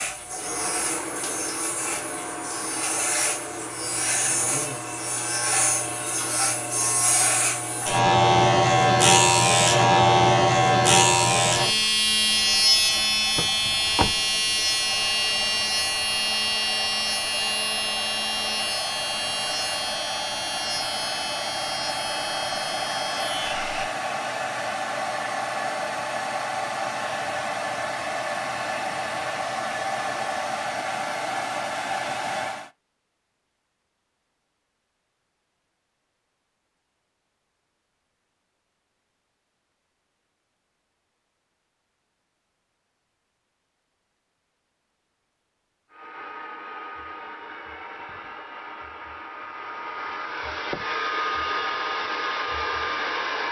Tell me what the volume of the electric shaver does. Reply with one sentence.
The loudness of the electric shaver goes up, then down.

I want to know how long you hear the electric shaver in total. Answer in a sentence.
You can hear the electric shaver for 24 seconds altogether.